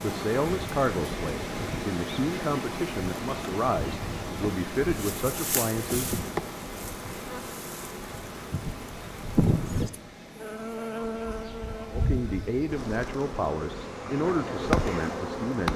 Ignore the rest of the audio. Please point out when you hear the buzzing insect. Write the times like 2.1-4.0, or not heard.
0.0-15.7.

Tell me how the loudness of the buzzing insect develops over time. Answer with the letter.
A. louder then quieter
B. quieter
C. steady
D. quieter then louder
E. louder
E.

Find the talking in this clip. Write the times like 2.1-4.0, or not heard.
0.0-6.2, 11.9-15.7.